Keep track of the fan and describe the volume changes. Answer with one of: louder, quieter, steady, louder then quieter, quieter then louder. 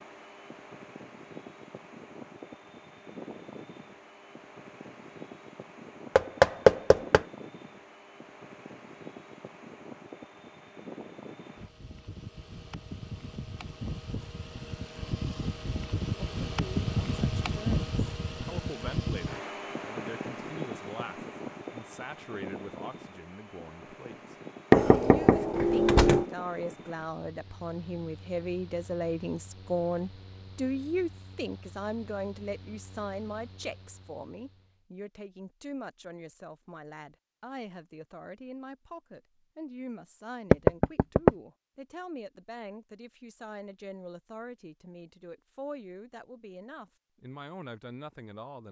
louder then quieter.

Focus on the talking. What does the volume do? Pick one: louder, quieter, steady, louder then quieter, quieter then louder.
louder then quieter.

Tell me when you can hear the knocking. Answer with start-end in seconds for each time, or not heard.
6.2-7.2, 24.7-26.2, 40.5-41.3.